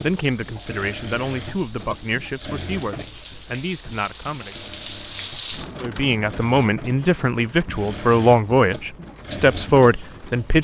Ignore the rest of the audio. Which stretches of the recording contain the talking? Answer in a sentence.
You can hear the talking from 0.0 to 4.7 s and from 5.8 to 10.5 s.